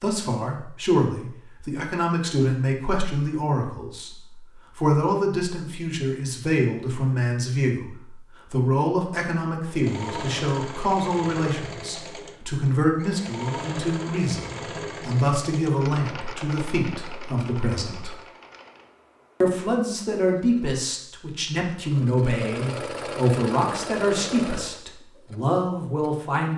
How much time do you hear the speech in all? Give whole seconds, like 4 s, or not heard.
25 s.